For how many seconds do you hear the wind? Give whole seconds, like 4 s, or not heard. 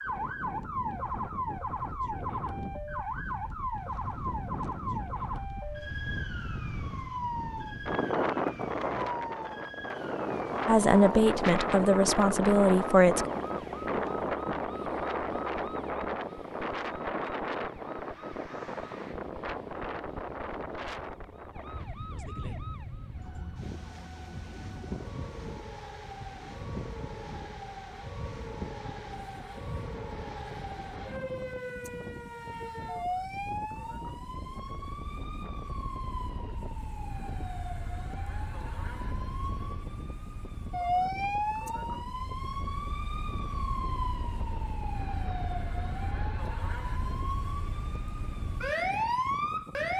50 s.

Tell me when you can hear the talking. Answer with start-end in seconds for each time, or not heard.
10.7-13.2.